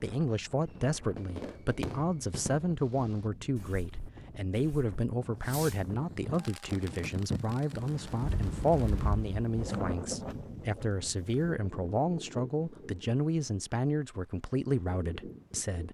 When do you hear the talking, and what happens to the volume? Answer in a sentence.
The talking can be heard from 0.0 to 15.9 s, at a steady volume.